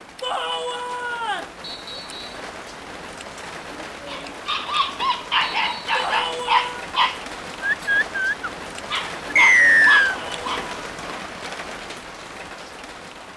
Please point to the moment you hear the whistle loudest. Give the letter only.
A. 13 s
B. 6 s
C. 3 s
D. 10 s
D.